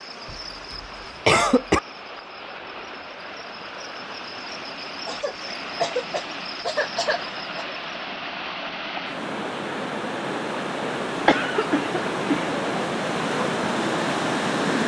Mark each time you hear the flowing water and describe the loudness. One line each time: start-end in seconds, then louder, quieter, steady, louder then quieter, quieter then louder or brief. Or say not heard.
0.0-14.8 louder.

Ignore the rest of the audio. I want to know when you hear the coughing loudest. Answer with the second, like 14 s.
1 s.